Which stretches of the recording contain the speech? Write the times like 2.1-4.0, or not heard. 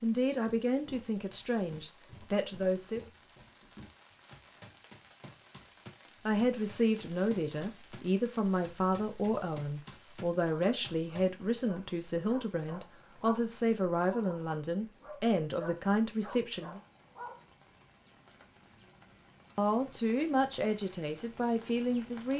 0.0-3.0, 6.2-16.8, 19.6-22.3.